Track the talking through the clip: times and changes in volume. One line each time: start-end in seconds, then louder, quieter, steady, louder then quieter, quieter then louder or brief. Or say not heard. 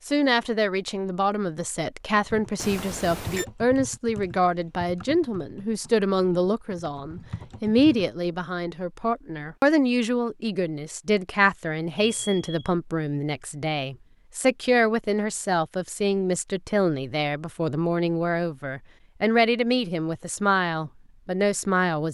0.1-22.0 steady.